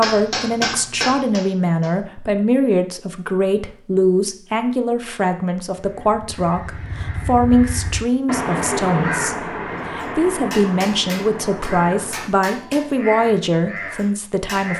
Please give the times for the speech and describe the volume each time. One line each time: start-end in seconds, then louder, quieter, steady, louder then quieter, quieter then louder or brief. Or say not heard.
0.0-14.7 steady.